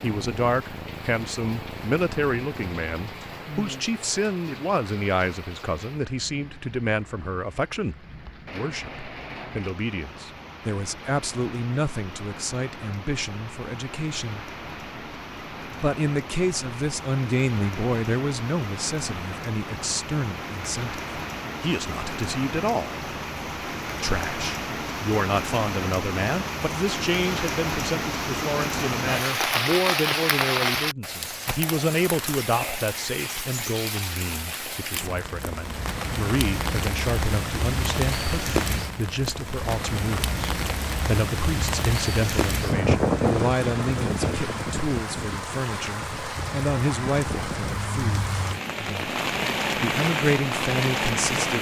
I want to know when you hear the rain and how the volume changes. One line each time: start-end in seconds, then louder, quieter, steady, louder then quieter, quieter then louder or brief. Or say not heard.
0.0-51.5 louder.